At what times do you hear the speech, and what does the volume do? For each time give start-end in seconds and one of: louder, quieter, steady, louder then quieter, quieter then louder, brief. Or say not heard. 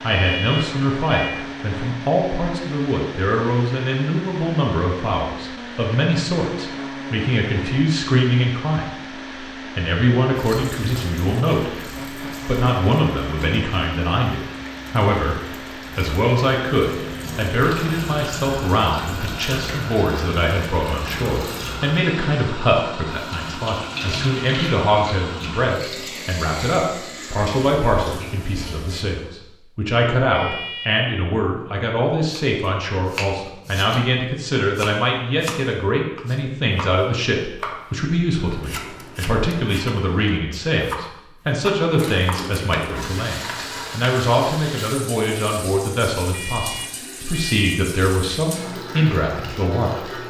0.0-50.2 steady.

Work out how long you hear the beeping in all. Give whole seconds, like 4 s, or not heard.
4 s.